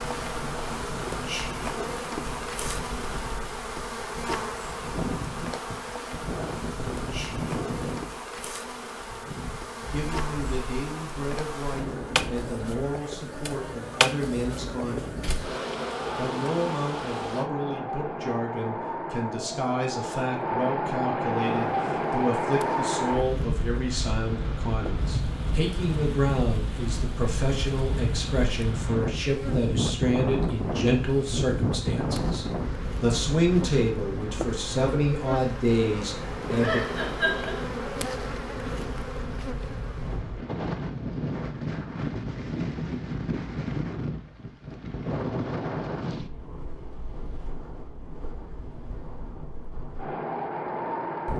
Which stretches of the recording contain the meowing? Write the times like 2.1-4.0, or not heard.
36.6-37.6.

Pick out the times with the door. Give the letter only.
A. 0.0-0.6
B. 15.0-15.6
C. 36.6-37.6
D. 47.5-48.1
B.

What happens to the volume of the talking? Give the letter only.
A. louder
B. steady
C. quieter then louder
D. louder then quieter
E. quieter
A.